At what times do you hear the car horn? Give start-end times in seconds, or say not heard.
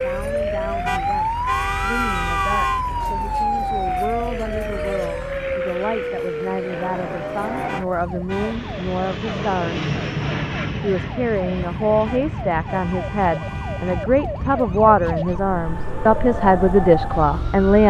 0.8-2.9, 7.7-8.6, 12.1-14.1.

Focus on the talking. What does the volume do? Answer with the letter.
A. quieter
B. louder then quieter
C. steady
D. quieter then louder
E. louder
E.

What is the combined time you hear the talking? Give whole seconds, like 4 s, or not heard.
17 s.